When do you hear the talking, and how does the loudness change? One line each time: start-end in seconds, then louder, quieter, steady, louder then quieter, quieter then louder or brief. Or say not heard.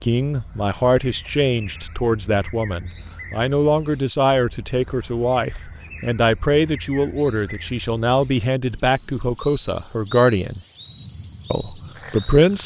0.0-10.6 steady
11.5-12.6 brief.